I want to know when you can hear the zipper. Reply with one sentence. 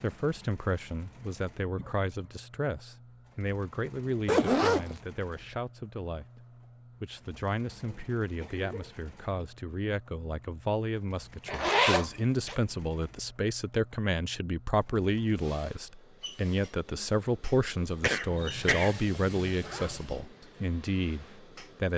The zipper can be heard from 4.2 to 5.0 s, from 11.4 to 12.6 s and from 18.2 to 20.2 s.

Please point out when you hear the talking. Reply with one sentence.
The talking can be heard from 0.0 to 6.4 s and from 7.0 to 21.9 s.